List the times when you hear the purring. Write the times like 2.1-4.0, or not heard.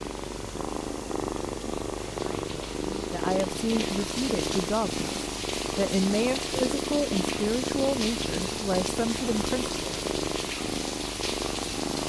0.0-12.0.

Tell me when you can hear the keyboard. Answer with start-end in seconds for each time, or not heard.
not heard.